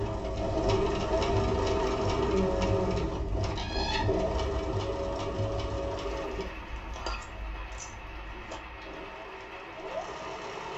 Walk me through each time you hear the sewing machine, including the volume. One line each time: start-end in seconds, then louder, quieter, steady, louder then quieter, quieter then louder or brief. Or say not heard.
0.0-10.7 quieter.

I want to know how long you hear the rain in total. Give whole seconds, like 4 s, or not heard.
11 s.